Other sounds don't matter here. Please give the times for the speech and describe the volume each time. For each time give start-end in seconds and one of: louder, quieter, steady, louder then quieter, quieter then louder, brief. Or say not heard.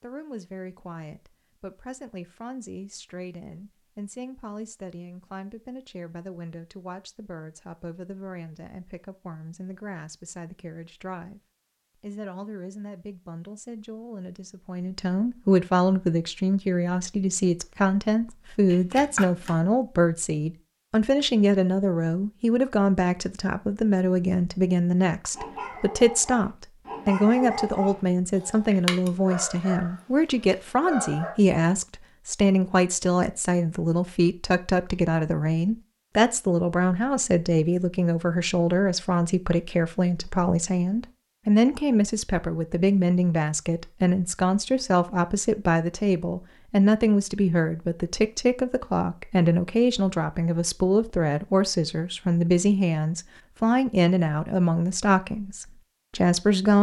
0.0-11.4 steady
12.0-56.7 steady.